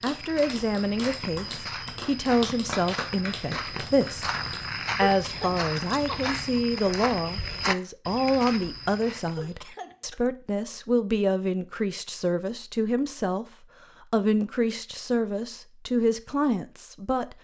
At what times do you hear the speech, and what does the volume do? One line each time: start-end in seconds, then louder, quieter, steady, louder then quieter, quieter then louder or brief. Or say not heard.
0.0-17.3 steady.